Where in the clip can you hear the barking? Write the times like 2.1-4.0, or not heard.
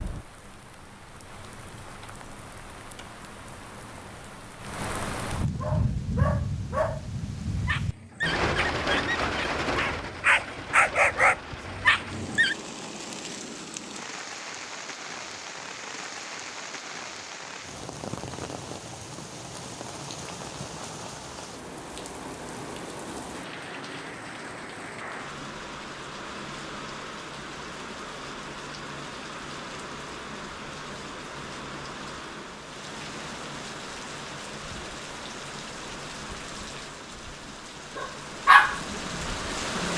5.6-12.6, 38.0-39.9.